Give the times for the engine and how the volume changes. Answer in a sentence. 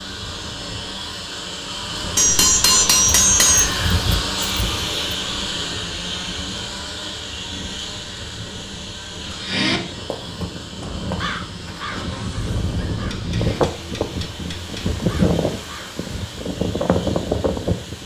You can hear the engine from 0.0 to 18.0 s, getting quieter.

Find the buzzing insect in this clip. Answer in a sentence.
The buzzing insect can't be heard in this clip.